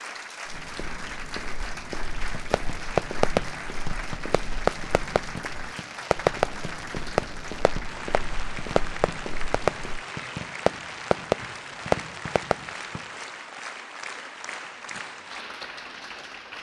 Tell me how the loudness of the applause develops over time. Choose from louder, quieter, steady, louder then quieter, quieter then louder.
steady.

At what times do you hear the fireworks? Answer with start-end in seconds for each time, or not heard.
2.3-13.1.